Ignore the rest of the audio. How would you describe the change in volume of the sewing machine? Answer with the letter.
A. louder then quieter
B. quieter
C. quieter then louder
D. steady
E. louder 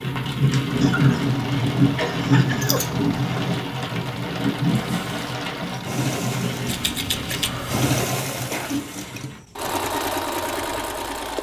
E.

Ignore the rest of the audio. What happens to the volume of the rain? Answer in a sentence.
The loudness of the rain goes down.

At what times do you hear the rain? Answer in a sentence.
The rain can be heard from 0.0 to 9.4 s.